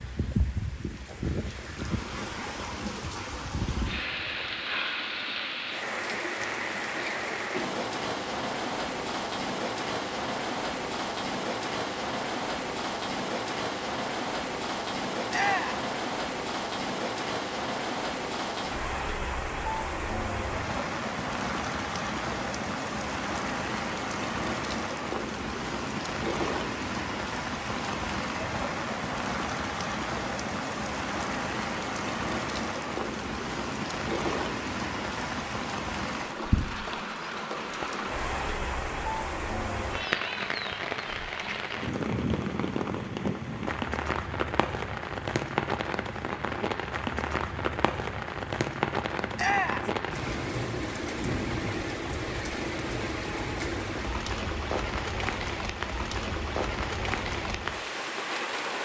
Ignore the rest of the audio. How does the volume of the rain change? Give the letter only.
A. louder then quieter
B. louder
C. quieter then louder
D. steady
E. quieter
D.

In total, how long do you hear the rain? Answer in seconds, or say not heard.
59 s.